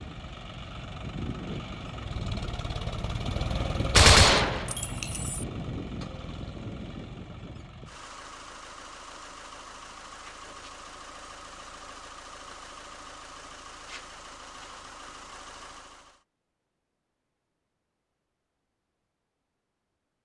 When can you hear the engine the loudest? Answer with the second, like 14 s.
4 s.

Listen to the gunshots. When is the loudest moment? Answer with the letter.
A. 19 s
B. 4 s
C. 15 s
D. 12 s
B.